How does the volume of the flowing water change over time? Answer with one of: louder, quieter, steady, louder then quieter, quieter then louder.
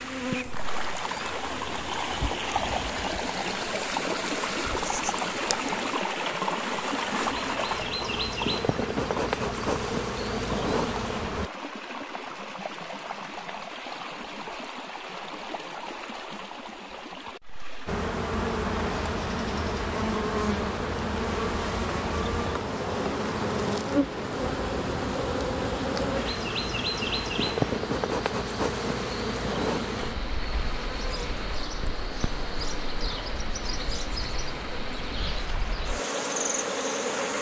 quieter.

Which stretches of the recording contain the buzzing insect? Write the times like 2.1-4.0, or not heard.
0.0-11.5, 17.9-37.3.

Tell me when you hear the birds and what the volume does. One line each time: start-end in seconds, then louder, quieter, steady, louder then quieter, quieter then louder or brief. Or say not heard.
not heard.